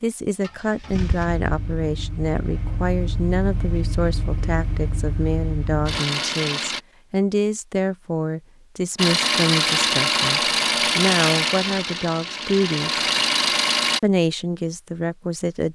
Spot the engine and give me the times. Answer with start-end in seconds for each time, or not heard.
0.4-6.8, 8.9-14.0.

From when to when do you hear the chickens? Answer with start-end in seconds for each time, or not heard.
not heard.